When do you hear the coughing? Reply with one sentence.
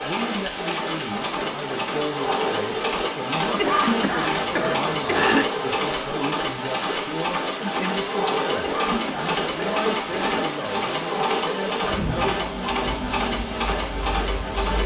The coughing can be heard from 3.5 to 5.5 s and from 8.6 to 10.4 s.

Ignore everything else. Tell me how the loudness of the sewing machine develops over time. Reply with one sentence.
The volume of the sewing machine stays about the same.